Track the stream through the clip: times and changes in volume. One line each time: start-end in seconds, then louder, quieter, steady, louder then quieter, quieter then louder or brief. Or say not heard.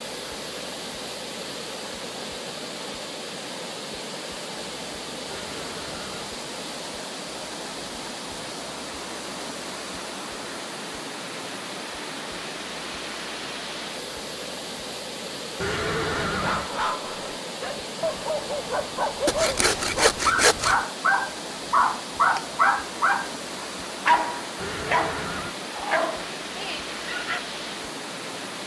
0.0-28.6 steady.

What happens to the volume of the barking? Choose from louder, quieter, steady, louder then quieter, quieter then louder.
louder then quieter.